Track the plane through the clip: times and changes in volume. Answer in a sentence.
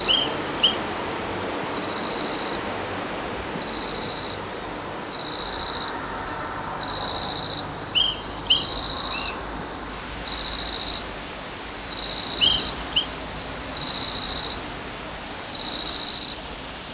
The plane can't be heard in this clip.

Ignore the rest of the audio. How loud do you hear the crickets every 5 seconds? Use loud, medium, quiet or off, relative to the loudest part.
medium, loud, loud, loud.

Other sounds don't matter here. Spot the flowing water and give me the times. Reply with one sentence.
You can hear the flowing water from 0.0 to 16.8 s.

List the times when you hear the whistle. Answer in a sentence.
The whistle can be heard from 0.1 to 0.8 s, from 8.0 to 9.3 s and from 12.4 to 13.1 s.